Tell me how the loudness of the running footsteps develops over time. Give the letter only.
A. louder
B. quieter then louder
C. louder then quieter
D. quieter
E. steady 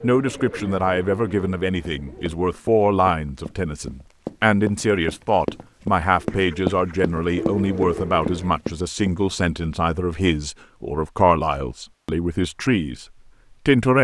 A.